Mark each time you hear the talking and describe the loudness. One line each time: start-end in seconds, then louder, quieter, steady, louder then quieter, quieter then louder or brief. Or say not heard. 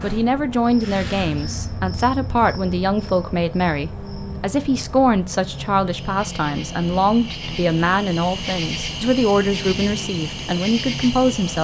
0.0-11.5 steady.